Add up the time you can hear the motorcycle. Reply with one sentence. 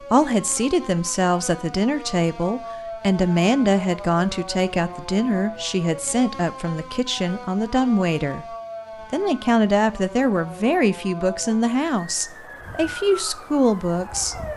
The motorcycle can't be heard in this clip.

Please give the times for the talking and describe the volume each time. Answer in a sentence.
You can hear the talking from 0.1 to 14.3 s, at a steady volume.